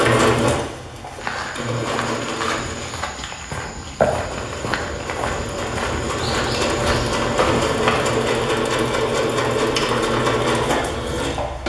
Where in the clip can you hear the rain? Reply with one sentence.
The rain can't be heard in this clip.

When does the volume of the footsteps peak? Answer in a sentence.
The volume of the footsteps peaks at 4 seconds.